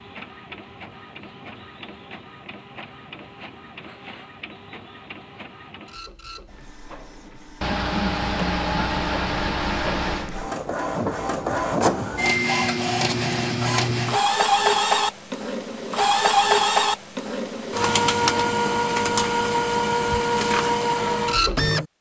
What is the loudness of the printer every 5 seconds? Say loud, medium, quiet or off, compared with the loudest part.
quiet, quiet, loud, loud, loud.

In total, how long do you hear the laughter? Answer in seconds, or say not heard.
3 s.